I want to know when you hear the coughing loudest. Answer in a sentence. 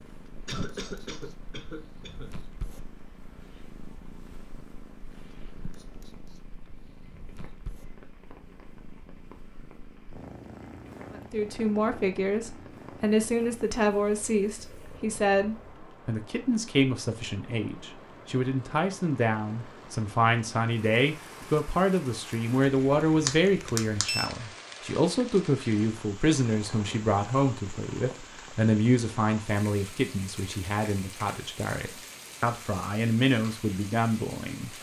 The loudest moment of the coughing is at 1 second.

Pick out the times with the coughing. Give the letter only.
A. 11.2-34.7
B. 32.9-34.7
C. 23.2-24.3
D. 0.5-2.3
D.